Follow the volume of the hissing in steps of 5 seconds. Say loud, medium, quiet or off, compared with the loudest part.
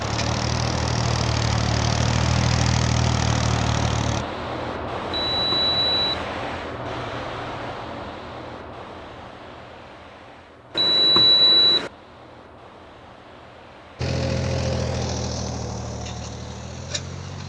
loud, loud, quiet, quiet.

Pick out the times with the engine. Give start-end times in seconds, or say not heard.
0.0-4.2, 13.9-17.4.